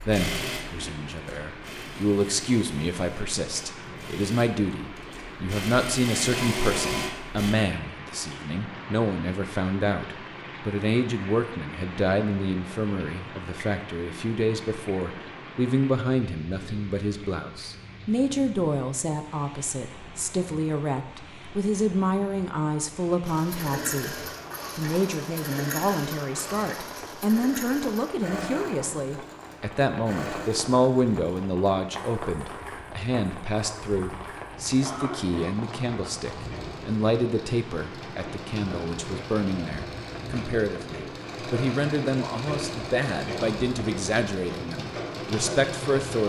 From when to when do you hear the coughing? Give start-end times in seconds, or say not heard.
34.8-35.5.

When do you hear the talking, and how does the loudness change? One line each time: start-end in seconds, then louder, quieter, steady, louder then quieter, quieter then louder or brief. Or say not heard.
0.1-46.2 steady.